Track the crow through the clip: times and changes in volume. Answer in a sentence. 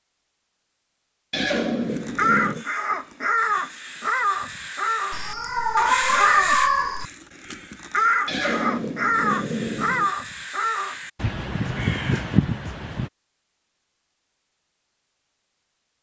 The crow can be heard from 1.9 to 13.1 s, at a steady volume.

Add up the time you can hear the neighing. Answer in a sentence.
You can hear the neighing for 3 seconds altogether.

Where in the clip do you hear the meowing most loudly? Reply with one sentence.
The loudest moment of the meowing is at 7 seconds.